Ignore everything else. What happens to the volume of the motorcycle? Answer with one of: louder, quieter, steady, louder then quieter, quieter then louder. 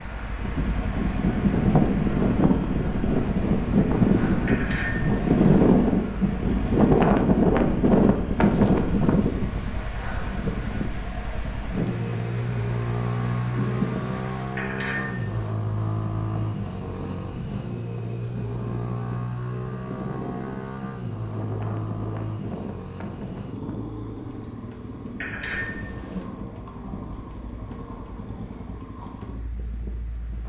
louder then quieter.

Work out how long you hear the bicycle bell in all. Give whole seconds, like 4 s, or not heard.
3 s.